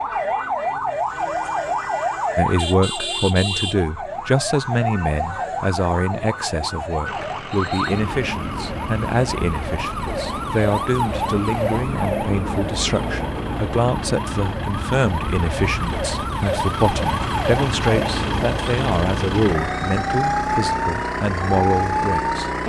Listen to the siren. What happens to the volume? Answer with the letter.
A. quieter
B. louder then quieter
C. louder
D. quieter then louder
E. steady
E.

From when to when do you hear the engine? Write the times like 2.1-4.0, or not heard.
7.0-22.6.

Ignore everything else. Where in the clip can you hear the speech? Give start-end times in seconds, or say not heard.
2.4-22.6.